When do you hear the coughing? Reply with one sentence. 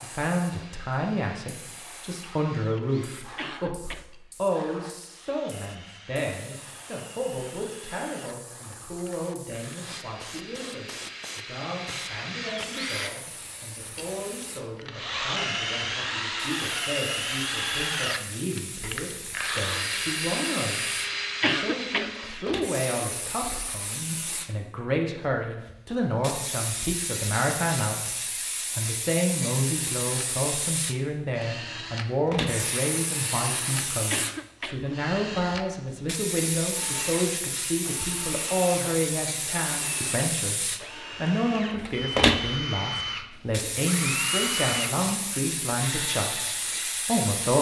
You can hear the coughing from 3.4 to 4.0 s, from 21.4 to 22.6 s and from 34.1 to 35.0 s.